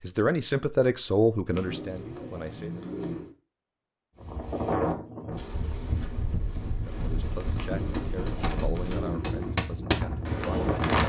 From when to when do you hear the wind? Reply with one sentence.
You can hear the wind from 4.2 to 11.0 s.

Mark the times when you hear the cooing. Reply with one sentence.
You can hear the cooing from 1.5 to 3.4 s and from 7.5 to 9.6 s.